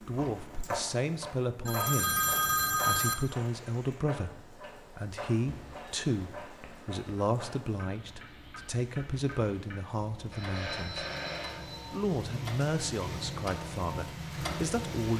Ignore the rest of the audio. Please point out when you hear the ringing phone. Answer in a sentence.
The ringing phone can be heard from 1.6 to 3.1 s, from 5.5 to 7.2 s and from 10.3 to 11.9 s.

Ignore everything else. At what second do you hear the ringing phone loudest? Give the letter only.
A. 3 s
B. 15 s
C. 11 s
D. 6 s
A.